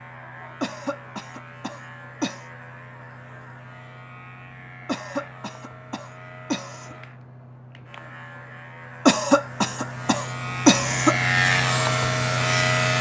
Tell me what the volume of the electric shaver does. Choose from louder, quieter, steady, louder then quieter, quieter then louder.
louder.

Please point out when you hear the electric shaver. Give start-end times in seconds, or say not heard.
0.0-12.9.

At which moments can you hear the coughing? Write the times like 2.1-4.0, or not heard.
0.6-2.5, 4.8-7.0, 9.1-11.2.